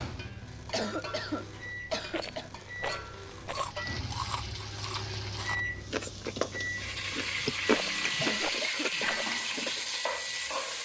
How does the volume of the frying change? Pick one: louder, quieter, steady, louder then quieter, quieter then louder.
louder.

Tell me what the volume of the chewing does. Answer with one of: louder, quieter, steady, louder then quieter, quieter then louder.
louder then quieter.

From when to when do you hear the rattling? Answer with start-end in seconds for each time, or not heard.
2.1-3.8, 7.7-9.3.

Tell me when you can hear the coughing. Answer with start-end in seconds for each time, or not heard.
0.7-2.5, 8.2-8.9.